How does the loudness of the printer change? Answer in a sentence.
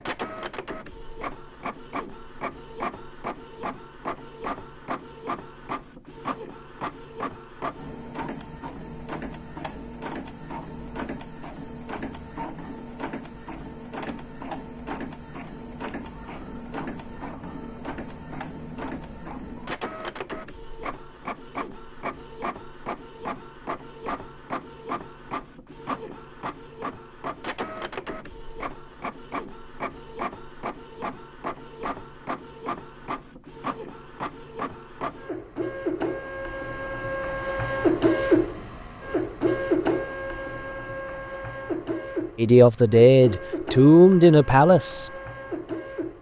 The volume of the printer goes up.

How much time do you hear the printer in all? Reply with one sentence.
The printer can be heard for 46 seconds in total.